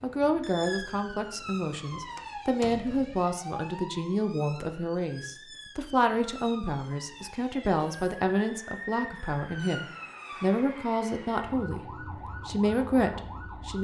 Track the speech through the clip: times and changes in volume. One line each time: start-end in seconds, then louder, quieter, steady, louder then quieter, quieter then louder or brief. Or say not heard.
0.0-13.7 steady.